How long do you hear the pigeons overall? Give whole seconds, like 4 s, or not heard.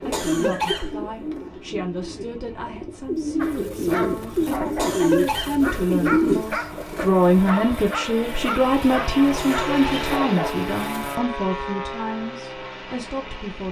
7 s.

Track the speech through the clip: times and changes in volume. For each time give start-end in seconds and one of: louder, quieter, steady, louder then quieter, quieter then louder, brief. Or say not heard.
0.0-13.6 louder then quieter.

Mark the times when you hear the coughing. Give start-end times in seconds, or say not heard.
0.1-1.4, 4.8-5.6, 9.3-10.1.